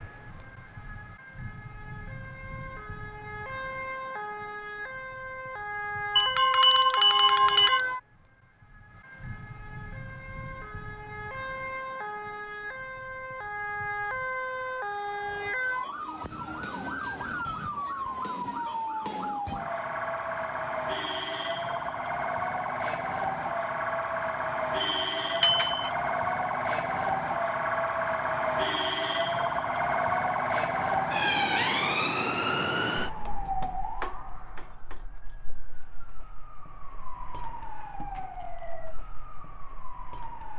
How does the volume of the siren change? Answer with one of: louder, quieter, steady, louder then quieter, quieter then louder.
louder then quieter.